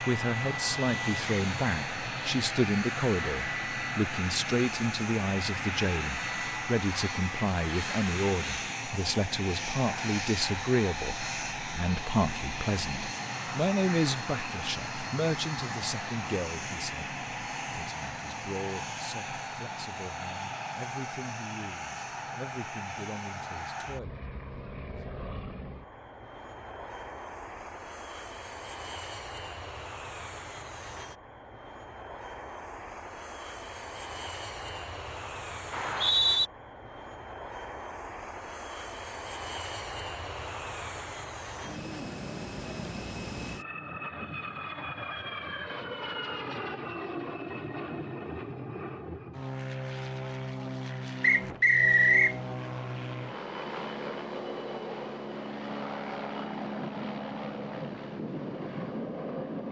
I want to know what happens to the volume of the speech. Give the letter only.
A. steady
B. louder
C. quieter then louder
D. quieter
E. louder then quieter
D.